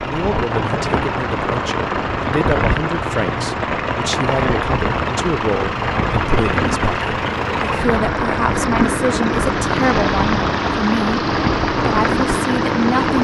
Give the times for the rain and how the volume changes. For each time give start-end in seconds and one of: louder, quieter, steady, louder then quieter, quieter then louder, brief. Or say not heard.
0.0-13.1 steady.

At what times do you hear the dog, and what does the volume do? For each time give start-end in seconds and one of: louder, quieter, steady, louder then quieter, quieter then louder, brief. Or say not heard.
not heard.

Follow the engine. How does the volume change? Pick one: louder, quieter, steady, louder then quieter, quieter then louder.
louder.